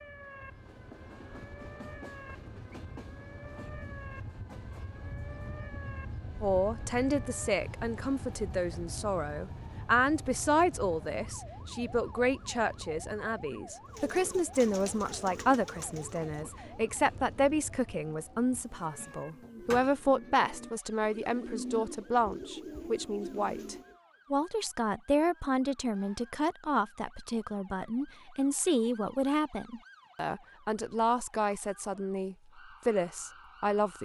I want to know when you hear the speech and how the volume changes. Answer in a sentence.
The speech can be heard from 6.4 to 34.0 s, at a steady volume.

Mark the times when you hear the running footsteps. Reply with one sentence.
You can't hear the running footsteps here.